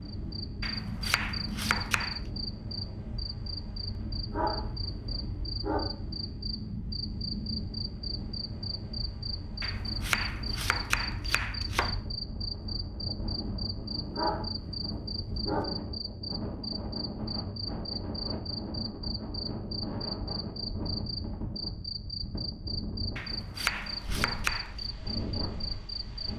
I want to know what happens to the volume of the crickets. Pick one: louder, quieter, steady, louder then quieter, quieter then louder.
steady.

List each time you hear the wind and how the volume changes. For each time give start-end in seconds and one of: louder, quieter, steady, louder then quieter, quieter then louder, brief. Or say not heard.
0.0-26.3 steady.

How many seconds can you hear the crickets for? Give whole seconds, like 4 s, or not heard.
26 s.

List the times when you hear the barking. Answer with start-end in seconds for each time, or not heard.
4.3-5.8, 14.1-15.7.